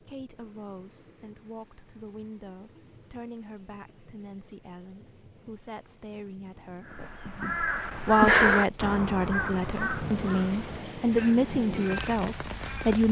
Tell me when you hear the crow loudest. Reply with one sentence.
The volume of the crow peaks at 8 seconds.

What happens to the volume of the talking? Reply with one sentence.
The volume of the talking goes up.